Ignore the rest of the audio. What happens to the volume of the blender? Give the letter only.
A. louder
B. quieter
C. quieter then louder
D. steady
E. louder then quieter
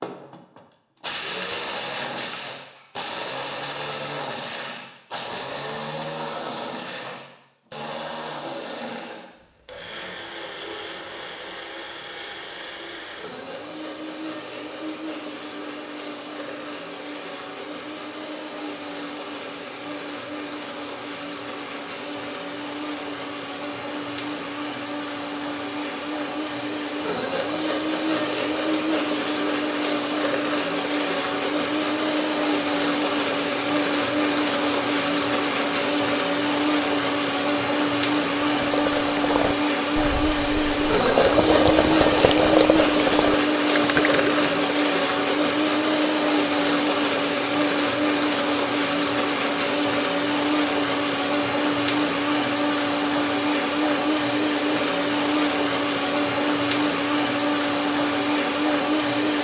A.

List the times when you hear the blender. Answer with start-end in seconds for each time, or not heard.
0.0-59.4.